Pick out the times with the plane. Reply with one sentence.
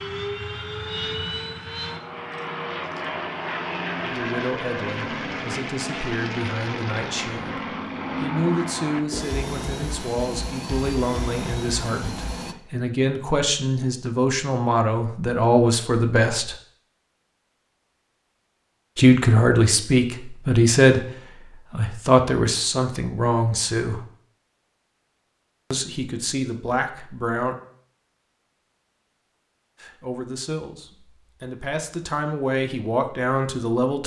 The plane can be heard from 0.0 to 12.6 s.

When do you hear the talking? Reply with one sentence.
The talking can be heard from 4.0 to 16.6 s, from 18.9 to 24.1 s, from 25.7 to 27.6 s and from 29.8 to 34.0 s.